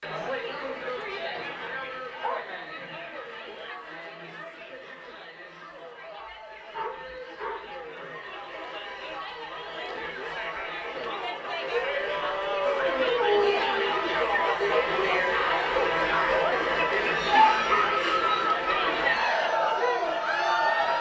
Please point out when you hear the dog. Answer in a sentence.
The dog can be heard from 1.3 to 2.5 s, from 6.2 to 7.8 s, from 11.7 to 13.9 s and from 17.3 to 17.9 s.